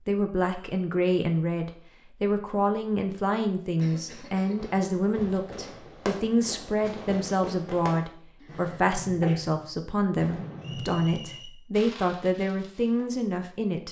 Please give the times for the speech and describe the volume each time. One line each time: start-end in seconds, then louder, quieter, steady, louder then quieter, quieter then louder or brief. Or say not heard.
0.1-13.8 steady.